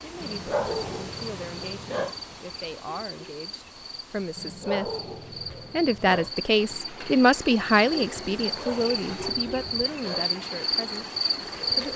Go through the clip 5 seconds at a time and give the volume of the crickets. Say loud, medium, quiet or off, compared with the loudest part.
quiet, medium, loud.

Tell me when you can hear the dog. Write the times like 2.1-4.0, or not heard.
0.2-2.1, 4.3-6.3, 8.4-10.3.